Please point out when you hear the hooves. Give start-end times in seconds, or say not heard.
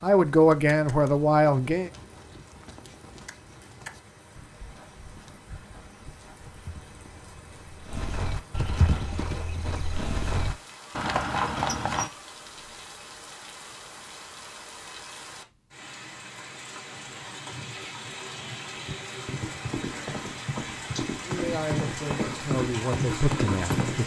0.3-12.1, 18.8-24.0.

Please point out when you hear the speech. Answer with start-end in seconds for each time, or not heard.
0.0-1.9, 21.2-24.0.